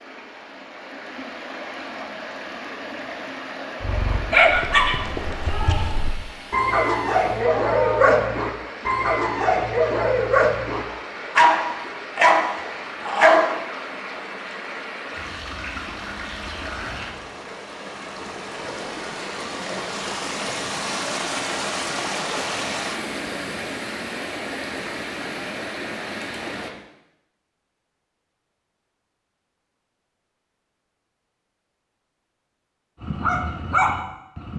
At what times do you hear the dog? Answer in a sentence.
You can hear the dog from 3.8 to 13.6 s and from 33.0 to 34.5 s.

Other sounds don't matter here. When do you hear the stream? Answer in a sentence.
The stream can be heard from 0.0 to 26.7 s.